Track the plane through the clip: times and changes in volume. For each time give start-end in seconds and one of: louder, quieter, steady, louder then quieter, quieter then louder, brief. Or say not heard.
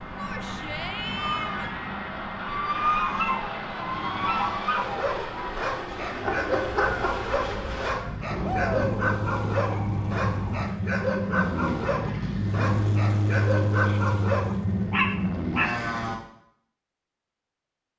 0.0-16.2 louder.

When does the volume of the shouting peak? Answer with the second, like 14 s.
9 s.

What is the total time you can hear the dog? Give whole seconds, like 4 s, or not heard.
11 s.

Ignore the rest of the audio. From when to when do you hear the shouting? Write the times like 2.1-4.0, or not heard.
0.1-1.7, 8.4-9.0, 13.8-14.2.